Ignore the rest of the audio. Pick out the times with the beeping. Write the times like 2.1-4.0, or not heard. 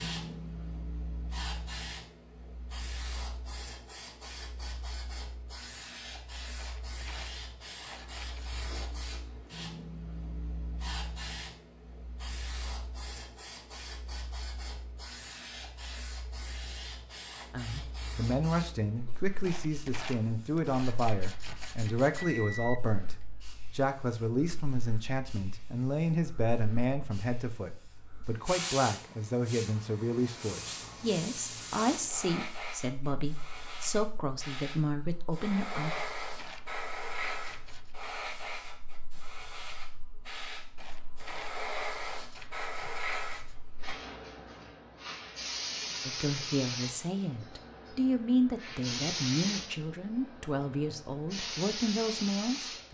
22.1-22.8.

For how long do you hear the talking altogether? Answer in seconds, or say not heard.
25 s.